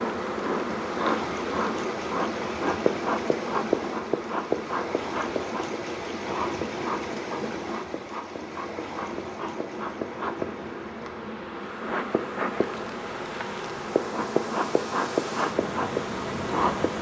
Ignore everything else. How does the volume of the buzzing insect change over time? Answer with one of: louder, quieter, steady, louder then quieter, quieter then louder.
quieter then louder.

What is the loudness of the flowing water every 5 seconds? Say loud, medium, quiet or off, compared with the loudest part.
loud, loud, medium, loud.